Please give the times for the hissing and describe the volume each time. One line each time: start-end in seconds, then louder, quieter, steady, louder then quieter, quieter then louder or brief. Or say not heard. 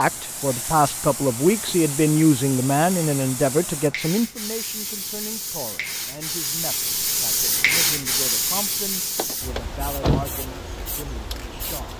0.0-11.9 louder then quieter.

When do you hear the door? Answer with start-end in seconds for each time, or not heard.
9.2-10.3.